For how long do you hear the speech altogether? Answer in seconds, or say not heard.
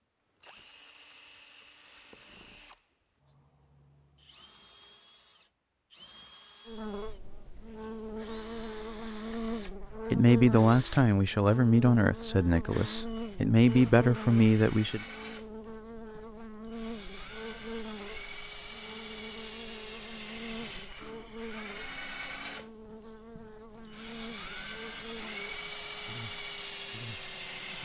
5 s.